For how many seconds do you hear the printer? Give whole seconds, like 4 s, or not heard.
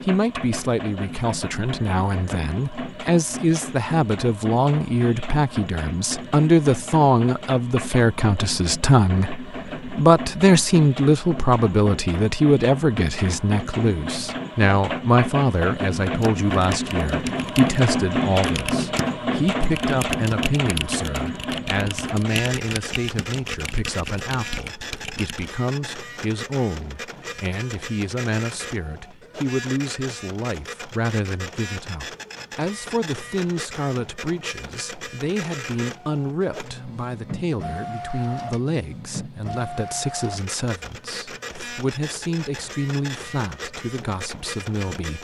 45 s.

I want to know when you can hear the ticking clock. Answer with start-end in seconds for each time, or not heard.
not heard.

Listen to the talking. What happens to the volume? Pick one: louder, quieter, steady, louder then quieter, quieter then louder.
quieter.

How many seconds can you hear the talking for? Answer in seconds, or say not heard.
45 s.